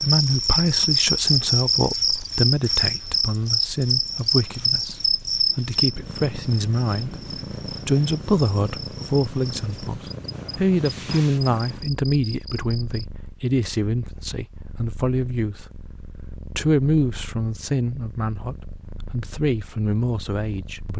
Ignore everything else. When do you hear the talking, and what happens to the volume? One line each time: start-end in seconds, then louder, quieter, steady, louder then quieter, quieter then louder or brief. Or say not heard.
0.0-20.9 steady.